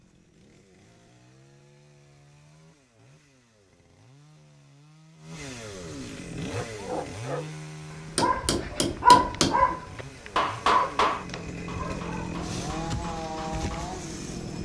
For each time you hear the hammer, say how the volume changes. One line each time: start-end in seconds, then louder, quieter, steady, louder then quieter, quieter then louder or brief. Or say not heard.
8.2-13.9 quieter.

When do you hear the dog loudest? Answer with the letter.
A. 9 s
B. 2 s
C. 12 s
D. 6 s
A.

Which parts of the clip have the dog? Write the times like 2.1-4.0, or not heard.
6.4-12.4.